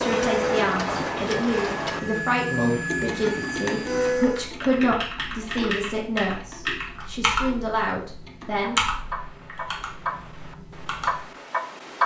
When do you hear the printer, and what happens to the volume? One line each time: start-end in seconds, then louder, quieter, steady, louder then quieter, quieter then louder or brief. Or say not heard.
0.0-4.5 quieter then louder.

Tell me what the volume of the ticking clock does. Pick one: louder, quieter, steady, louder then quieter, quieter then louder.
quieter then louder.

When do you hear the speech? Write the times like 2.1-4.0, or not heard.
0.0-8.8.